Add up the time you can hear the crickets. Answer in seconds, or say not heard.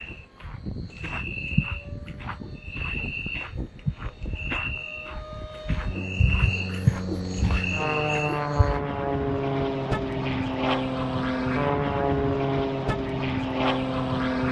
9 s.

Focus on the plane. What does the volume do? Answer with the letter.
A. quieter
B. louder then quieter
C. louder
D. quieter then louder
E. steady
C.